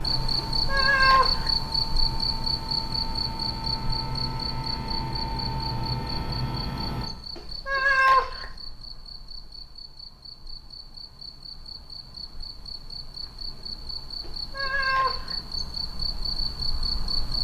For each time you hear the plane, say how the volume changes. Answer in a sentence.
You can hear the plane from 0.0 to 7.1 s, getting louder.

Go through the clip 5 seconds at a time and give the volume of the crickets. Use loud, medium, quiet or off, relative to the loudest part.
loud, medium, medium, loud.